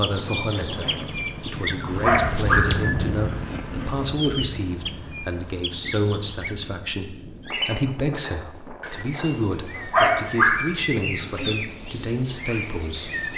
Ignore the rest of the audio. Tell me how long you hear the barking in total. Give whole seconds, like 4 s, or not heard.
4 s.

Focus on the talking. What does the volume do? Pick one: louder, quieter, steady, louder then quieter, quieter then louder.
steady.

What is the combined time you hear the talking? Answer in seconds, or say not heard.
13 s.